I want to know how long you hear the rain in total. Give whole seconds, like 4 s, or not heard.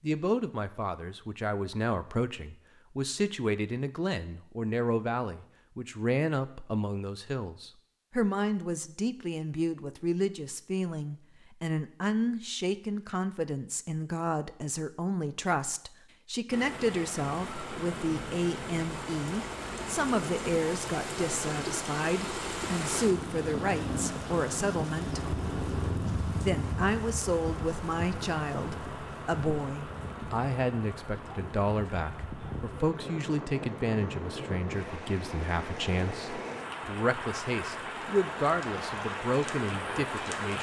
24 s.